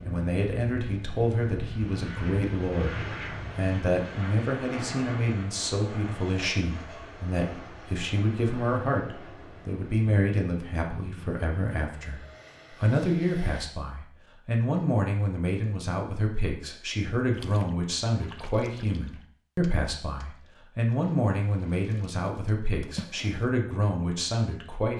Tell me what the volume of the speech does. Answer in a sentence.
The volume of the speech stays about the same.